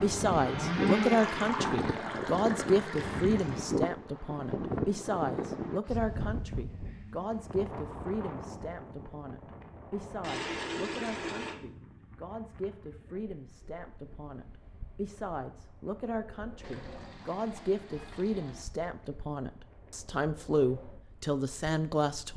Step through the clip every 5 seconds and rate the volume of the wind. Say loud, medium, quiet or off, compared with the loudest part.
loud, medium, quiet, quiet, quiet.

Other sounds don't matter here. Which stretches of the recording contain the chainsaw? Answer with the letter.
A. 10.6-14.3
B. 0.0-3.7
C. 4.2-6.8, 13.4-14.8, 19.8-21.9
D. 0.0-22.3
B.